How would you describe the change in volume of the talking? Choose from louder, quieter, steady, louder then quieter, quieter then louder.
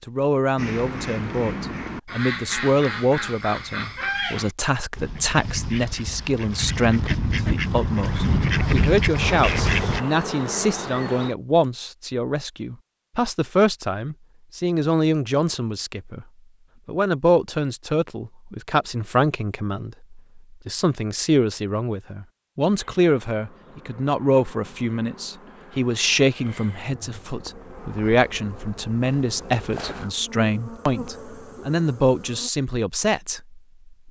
steady.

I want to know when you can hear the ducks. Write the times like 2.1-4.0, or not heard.
0.6-10.0.